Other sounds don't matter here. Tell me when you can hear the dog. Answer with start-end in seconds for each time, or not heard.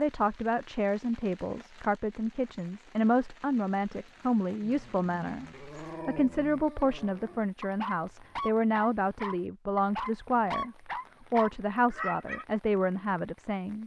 4.6-12.4.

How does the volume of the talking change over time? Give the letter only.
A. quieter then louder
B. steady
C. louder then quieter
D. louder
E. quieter
B.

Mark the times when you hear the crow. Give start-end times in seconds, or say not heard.
not heard.